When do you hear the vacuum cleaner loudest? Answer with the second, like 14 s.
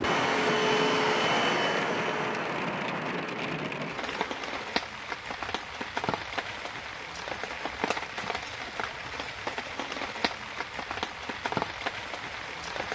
1 s.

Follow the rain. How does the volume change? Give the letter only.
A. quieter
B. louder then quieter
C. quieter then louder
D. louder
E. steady
E.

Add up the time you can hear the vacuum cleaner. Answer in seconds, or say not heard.
5 s.